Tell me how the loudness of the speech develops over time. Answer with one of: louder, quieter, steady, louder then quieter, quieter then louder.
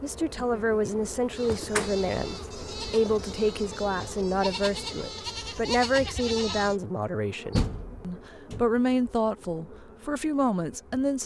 steady.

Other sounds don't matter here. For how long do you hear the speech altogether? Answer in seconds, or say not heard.
11 s.